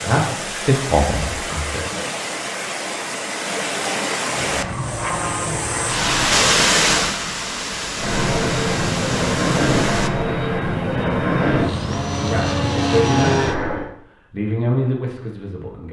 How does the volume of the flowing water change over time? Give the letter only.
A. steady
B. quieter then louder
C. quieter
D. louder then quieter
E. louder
D.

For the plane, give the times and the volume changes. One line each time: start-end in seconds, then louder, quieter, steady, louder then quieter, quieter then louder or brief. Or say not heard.
4.3-6.4 brief
7.9-13.9 steady.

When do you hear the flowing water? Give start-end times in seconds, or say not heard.
0.0-10.1.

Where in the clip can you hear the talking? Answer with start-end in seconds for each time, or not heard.
0.0-1.8, 12.1-15.8.